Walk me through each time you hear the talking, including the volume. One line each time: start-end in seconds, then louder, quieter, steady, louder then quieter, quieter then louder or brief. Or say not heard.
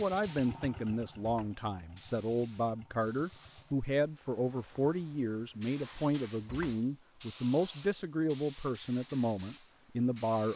0.0-10.5 steady.